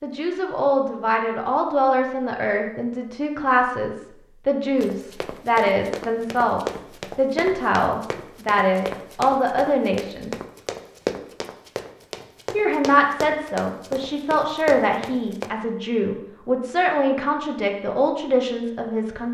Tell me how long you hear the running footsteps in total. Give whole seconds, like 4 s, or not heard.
11 s.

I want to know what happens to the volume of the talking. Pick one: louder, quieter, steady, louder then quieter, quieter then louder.
steady.